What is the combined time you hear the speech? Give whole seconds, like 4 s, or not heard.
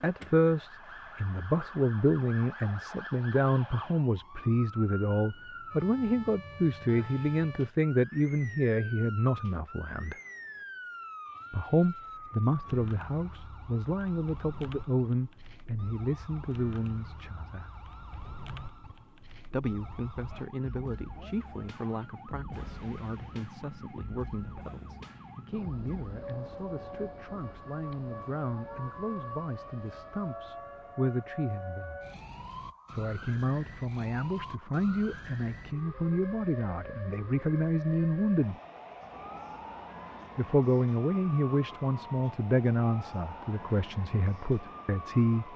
40 s.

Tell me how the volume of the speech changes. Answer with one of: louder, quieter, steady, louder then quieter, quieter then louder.
quieter then louder.